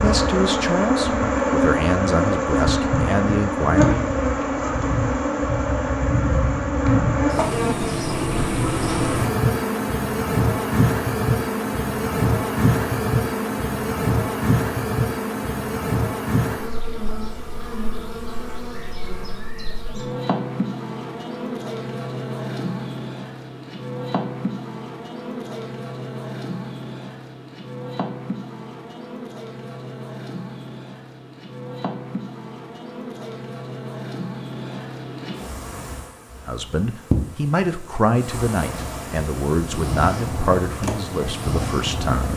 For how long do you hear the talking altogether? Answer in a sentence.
The talking can be heard for 10 seconds in total.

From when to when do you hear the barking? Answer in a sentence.
You can't hear the barking here.